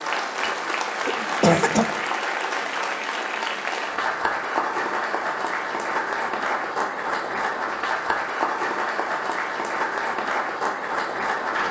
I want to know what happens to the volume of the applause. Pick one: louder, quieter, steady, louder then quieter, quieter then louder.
steady.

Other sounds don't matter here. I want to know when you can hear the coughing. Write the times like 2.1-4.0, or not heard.
1.1-1.9.